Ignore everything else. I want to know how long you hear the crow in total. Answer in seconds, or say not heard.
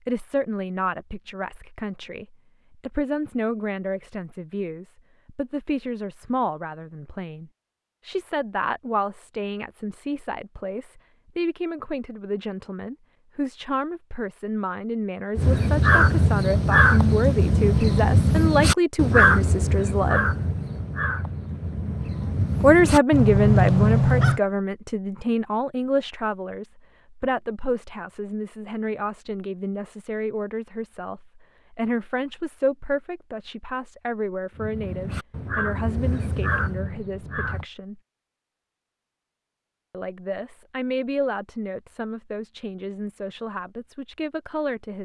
12 s.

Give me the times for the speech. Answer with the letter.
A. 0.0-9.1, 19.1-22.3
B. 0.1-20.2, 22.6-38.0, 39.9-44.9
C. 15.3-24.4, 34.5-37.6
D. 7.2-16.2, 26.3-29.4
B.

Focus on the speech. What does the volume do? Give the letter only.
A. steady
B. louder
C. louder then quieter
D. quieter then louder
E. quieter
C.